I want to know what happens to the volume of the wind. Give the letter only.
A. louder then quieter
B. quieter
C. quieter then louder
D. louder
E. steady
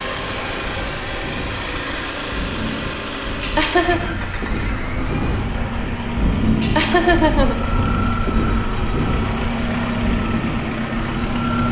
D.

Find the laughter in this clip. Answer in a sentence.
The laughter can be heard from 3.4 to 4.0 s and from 6.6 to 7.5 s.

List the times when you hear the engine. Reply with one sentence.
The engine can be heard from 0.0 to 11.6 s.